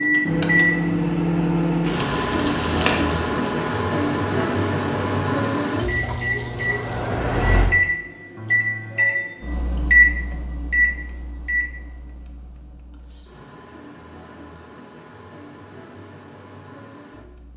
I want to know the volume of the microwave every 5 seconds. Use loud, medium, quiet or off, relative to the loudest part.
loud, loud, medium, quiet.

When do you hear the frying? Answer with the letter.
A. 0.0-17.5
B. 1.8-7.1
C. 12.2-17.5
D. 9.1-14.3
B.